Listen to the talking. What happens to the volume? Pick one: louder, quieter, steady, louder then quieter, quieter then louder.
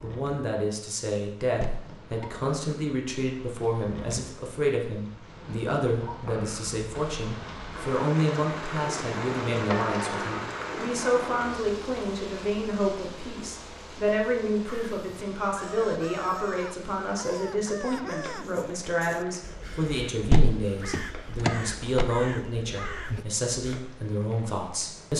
steady.